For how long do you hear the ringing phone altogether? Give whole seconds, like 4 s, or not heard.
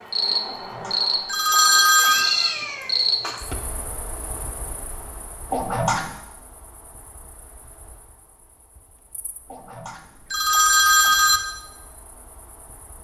4 s.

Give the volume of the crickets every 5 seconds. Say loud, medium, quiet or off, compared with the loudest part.
loud, quiet, quiet.